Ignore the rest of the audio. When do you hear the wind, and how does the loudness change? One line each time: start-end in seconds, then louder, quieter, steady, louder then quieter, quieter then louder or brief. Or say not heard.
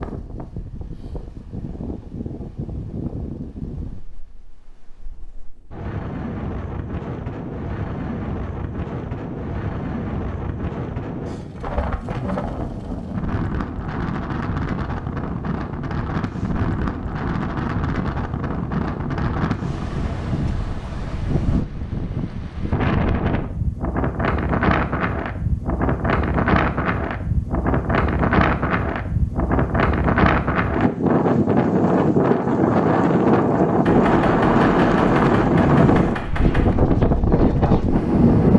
0.0-38.5 louder.